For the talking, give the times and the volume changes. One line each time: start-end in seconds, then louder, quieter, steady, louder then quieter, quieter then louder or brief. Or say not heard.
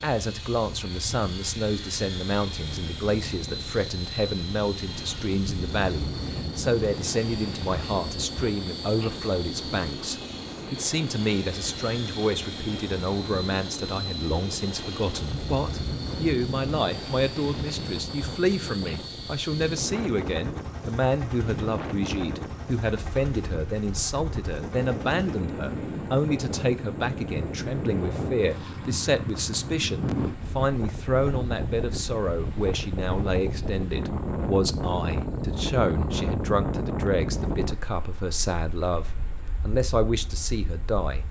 0.0-41.2 steady.